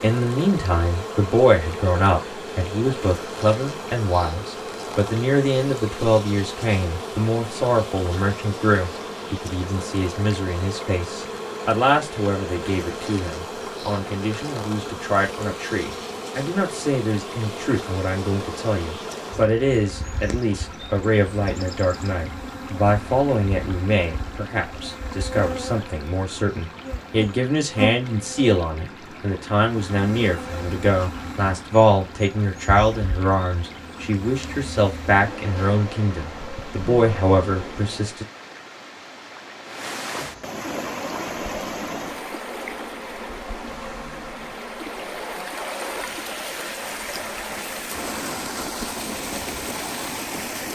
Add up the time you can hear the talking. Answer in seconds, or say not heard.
38 s.